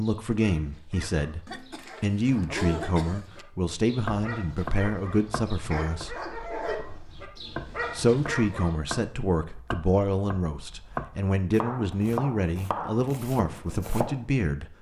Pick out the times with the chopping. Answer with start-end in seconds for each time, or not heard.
4.0-14.2.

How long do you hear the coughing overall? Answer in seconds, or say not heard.
2 s.